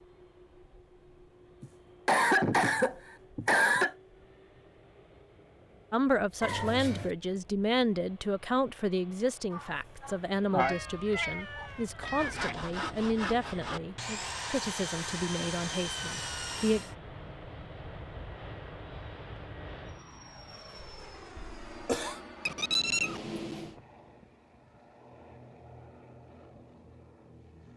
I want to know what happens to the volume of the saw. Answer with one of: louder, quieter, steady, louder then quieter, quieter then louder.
steady.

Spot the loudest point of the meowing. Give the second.
23 s.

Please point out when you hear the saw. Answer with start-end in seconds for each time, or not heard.
12.0-16.9.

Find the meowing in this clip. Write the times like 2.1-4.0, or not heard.
6.4-7.1, 10.6-12.6, 22.4-23.8.